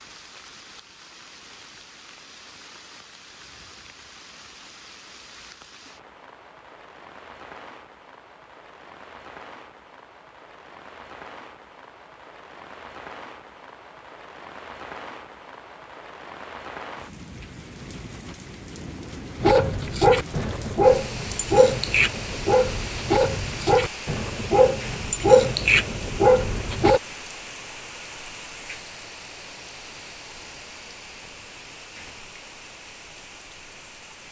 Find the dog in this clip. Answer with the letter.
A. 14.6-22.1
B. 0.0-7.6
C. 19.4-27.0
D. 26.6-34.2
C.